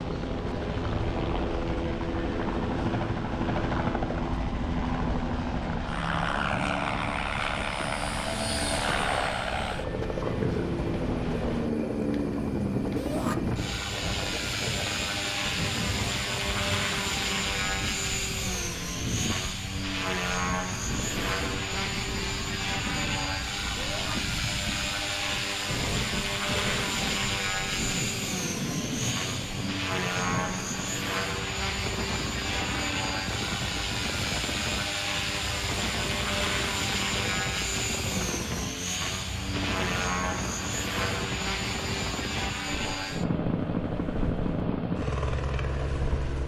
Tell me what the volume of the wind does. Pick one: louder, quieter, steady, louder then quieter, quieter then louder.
steady.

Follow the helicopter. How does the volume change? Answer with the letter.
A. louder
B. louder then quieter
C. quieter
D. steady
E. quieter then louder
D.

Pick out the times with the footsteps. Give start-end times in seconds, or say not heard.
not heard.